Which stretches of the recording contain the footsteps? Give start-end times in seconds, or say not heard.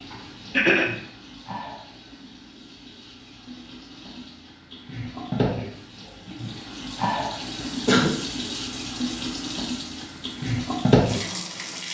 not heard.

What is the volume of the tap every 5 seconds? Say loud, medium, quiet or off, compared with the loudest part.
quiet, medium, loud.